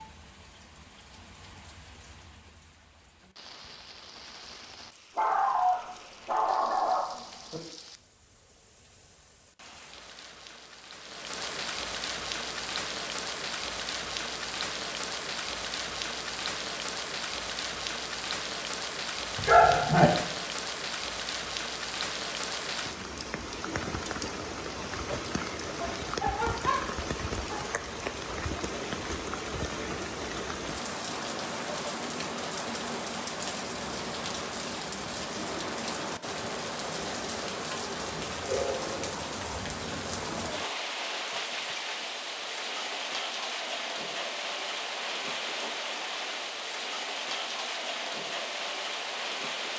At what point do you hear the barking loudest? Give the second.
20 s.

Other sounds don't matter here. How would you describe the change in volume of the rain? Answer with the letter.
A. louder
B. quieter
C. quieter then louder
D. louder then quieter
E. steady
A.